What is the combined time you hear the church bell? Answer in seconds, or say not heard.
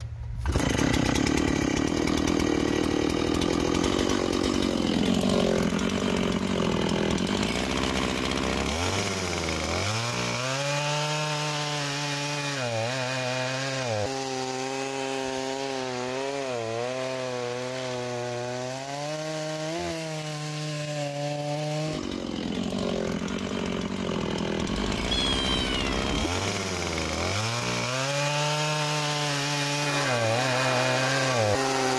2 s.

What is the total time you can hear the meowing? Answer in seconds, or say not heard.
2 s.